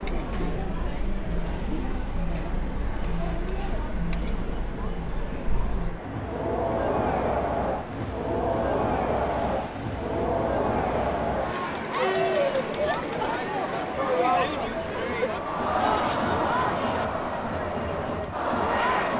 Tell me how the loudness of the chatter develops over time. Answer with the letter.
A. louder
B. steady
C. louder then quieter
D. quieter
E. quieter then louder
A.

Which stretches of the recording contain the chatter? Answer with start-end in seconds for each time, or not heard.
0.0-19.1.